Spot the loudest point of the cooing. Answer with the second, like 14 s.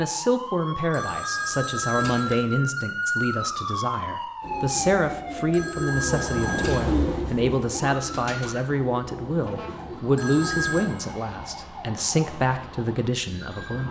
7 s.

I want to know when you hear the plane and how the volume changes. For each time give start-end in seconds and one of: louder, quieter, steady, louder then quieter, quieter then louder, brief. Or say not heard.
not heard.